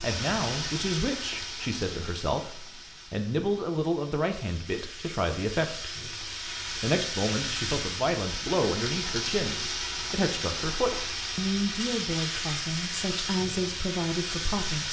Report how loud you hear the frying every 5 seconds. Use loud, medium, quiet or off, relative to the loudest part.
medium, loud, loud.